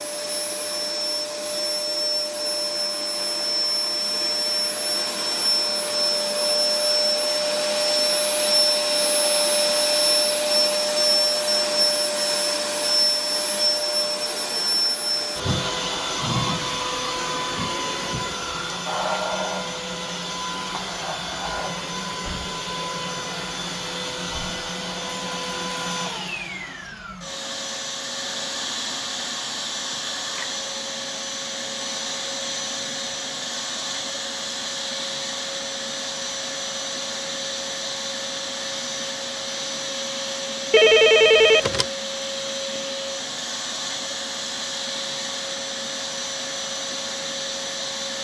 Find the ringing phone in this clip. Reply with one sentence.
You can hear the ringing phone from 40.7 to 41.9 s.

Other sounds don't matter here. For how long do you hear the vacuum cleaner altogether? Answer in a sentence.
You can hear the vacuum cleaner for 48 seconds altogether.